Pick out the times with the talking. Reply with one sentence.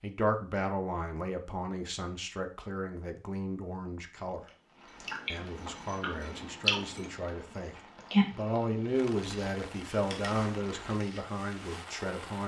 You can hear the talking from 0.0 to 4.4 s and from 5.3 to 12.4 s.